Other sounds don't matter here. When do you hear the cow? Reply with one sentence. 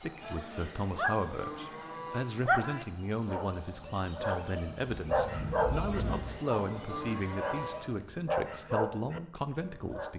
The cow can be heard from 0.2 to 2.2 s and from 5.7 to 7.8 s.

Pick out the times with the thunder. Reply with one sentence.
You can hear the thunder from 5.0 to 6.4 s.